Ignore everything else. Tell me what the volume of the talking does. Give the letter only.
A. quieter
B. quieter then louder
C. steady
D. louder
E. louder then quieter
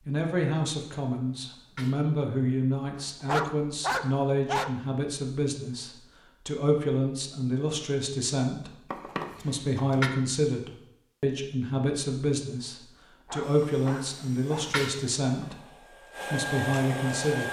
C.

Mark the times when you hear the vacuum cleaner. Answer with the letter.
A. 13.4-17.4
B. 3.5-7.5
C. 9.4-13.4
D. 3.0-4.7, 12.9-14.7
A.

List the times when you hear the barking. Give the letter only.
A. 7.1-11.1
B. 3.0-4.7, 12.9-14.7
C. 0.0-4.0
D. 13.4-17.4
B.